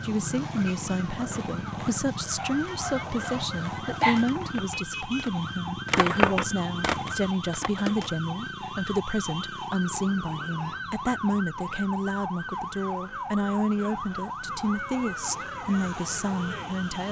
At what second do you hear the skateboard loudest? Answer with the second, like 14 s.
6 s.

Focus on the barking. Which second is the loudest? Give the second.
4 s.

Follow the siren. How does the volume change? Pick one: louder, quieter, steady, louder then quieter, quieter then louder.
steady.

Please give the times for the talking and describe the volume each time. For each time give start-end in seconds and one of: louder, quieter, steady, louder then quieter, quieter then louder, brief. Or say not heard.
0.0-17.0 steady.